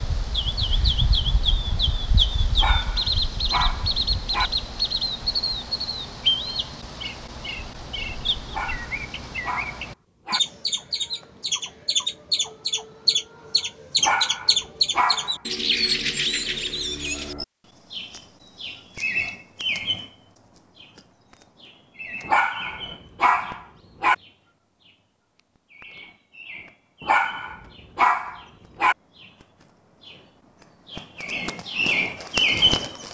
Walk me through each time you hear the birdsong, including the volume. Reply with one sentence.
You can hear the birdsong from 0.0 to 33.0 s, getting quieter then louder.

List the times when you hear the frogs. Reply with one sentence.
You can't hear the frogs here.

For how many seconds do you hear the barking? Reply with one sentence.
You can hear the barking for 9 seconds altogether.